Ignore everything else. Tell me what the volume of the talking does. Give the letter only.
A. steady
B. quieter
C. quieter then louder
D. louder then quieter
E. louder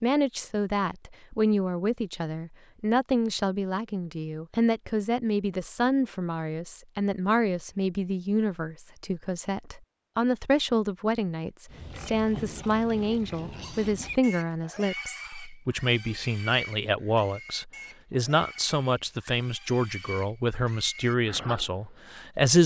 A.